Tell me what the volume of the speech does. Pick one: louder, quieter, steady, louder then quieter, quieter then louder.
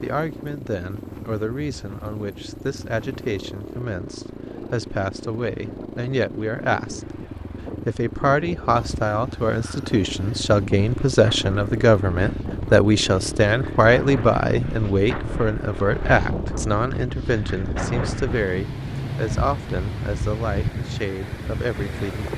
louder then quieter.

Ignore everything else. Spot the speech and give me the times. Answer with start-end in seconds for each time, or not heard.
0.0-7.2, 7.8-22.3.